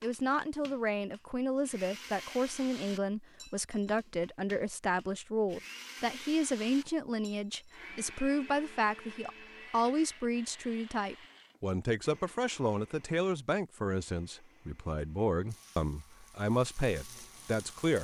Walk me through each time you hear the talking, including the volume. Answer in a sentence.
The talking can be heard from 0.0 to 17.9 s, at a steady volume.